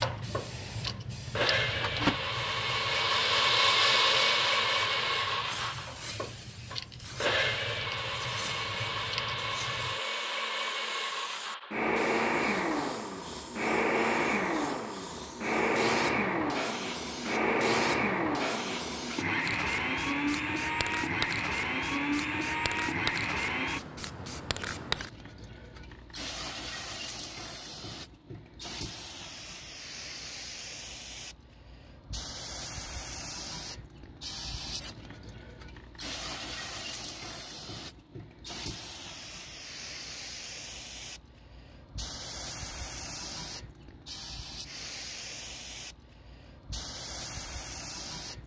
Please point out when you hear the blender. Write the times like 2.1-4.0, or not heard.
0.0-23.8.